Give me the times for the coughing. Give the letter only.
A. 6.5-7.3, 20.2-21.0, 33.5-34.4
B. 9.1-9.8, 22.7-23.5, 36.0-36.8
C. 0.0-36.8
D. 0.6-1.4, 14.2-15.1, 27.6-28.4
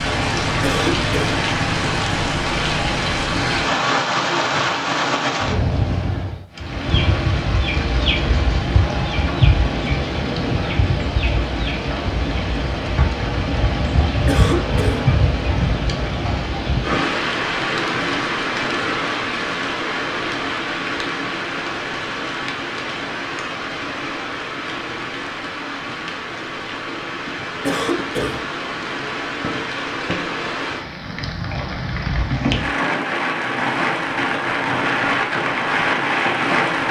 D.